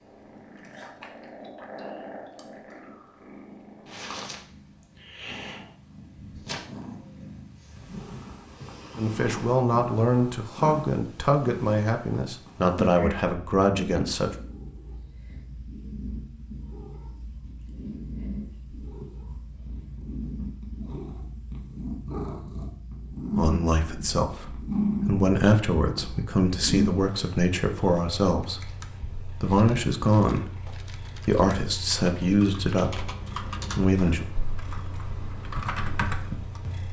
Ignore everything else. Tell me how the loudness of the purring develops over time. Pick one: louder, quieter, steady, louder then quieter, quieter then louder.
louder then quieter.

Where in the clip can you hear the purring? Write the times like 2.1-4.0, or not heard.
0.0-36.8.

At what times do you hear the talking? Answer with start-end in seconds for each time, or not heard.
8.9-14.3, 23.4-30.6, 31.2-34.2.